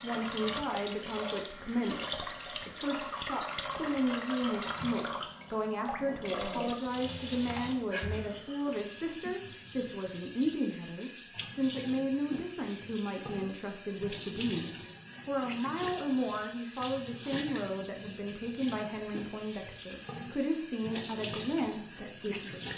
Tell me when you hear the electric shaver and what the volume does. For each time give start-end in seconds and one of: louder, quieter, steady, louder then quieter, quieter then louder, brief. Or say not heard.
not heard.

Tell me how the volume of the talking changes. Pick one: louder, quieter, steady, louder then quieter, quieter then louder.
steady.